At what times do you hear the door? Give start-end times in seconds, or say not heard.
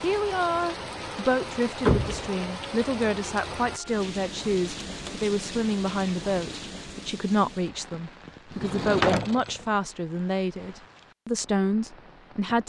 1.9-2.5, 4.8-5.3, 8.5-9.7.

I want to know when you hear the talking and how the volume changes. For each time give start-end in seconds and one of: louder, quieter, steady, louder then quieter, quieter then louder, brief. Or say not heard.
0.0-12.6 steady.